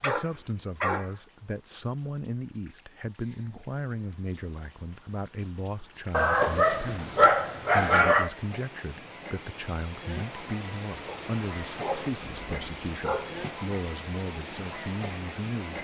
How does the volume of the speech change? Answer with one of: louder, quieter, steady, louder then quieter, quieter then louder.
steady.